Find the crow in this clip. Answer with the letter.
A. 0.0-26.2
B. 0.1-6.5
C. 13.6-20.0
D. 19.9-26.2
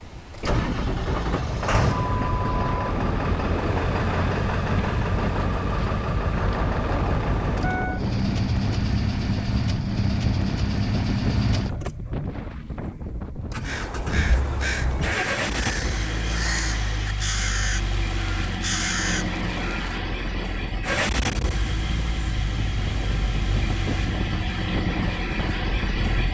C.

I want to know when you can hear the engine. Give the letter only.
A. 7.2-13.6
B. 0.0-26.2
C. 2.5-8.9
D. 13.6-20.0
B.